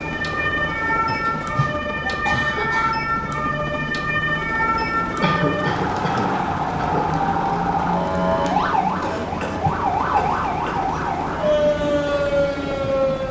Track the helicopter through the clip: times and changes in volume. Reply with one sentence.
You can hear the helicopter from 0.0 to 13.2 s, at a steady volume.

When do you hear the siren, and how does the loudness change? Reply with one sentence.
The siren can be heard from 0.0 to 13.2 s, at a steady volume.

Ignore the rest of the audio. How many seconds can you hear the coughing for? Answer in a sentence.
The coughing can be heard for 6 seconds in total.